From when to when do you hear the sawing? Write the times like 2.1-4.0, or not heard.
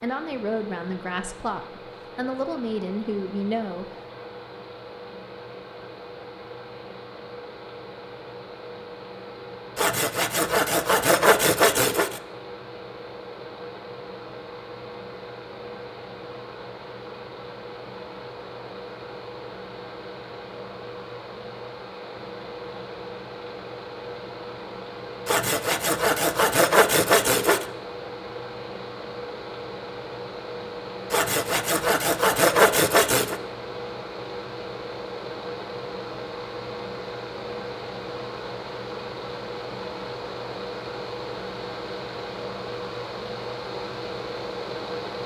9.8-12.2, 25.2-27.6, 31.1-33.4.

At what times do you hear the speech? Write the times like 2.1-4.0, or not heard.
0.0-3.9.